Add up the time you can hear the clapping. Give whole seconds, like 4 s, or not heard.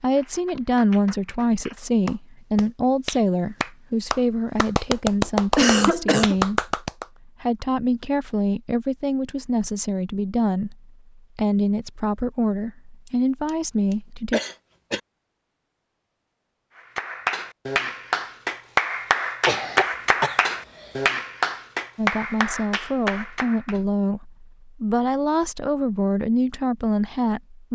14 s.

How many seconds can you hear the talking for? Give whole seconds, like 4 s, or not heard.
20 s.